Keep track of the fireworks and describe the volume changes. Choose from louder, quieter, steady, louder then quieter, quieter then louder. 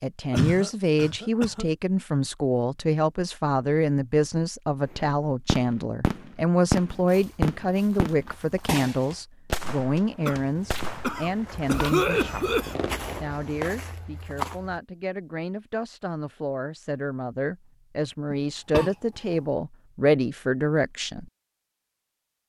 quieter.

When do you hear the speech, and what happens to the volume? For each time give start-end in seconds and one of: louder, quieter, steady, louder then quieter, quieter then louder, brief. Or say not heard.
0.0-12.6 steady
13.2-21.2 louder.